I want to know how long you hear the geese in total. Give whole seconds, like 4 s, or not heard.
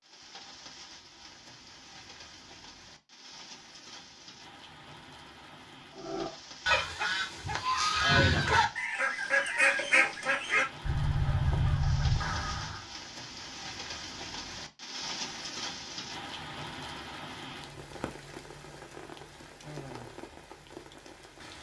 7 s.